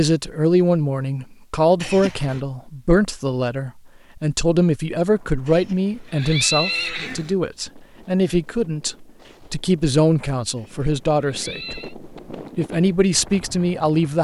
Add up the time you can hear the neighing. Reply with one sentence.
The neighing can be heard for 4 seconds in total.